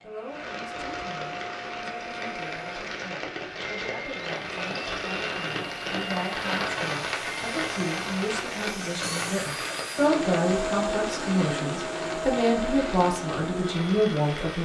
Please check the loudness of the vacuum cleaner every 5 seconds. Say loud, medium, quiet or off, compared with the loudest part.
medium, medium, loud.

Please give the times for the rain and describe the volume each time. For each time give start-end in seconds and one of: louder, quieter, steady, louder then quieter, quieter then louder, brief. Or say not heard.
0.0-14.6 louder then quieter.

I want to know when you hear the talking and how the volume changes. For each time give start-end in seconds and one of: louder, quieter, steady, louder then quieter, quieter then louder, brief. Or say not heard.
0.0-14.6 louder.